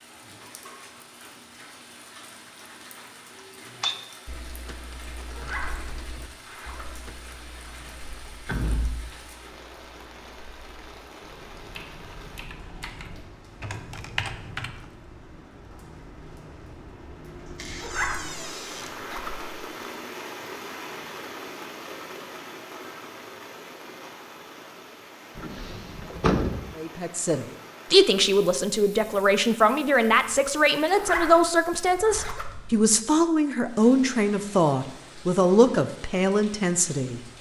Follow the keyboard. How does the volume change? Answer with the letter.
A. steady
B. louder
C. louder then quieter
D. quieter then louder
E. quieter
D.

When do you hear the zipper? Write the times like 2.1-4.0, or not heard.
5.3-7.0, 17.8-19.5, 30.9-32.8.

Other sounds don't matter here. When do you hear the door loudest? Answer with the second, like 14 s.
26 s.